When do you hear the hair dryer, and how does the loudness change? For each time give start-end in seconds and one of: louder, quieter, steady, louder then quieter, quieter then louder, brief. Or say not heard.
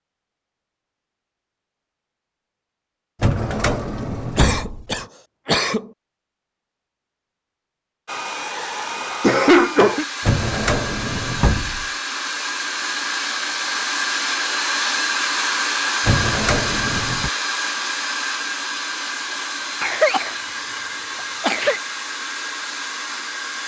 8.1-23.6 louder then quieter.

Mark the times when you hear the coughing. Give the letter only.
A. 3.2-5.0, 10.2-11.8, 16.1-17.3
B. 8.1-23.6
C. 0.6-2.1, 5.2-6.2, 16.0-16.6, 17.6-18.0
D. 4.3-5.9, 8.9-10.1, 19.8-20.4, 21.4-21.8
D.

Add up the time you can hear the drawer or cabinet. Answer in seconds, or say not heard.
5 s.